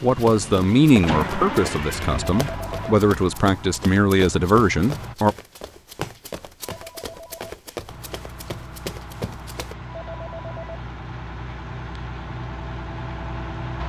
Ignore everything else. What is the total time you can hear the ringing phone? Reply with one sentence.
The ringing phone can be heard for 3 seconds in total.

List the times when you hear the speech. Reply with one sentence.
The speech can be heard from 0.0 to 5.3 s.